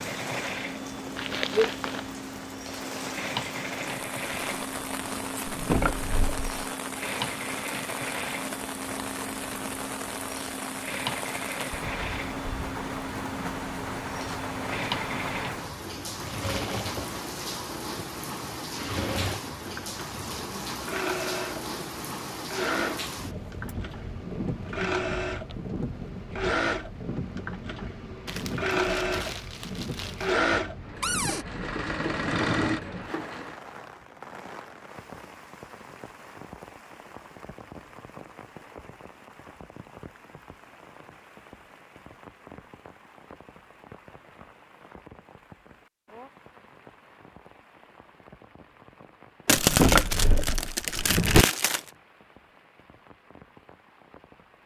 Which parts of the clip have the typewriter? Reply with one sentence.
You can't hear the typewriter here.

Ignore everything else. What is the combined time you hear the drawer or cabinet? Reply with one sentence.
You can hear the drawer or cabinet for 3 seconds altogether.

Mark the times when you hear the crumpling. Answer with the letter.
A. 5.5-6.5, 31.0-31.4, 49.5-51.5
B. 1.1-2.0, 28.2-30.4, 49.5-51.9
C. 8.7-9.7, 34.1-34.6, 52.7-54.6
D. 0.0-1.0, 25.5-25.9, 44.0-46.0
B.